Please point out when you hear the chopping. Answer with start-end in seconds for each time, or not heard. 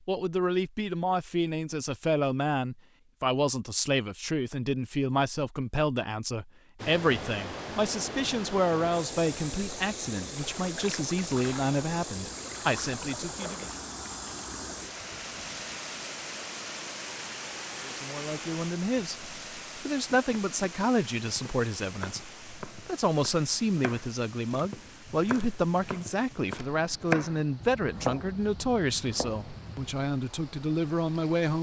20.1-29.9.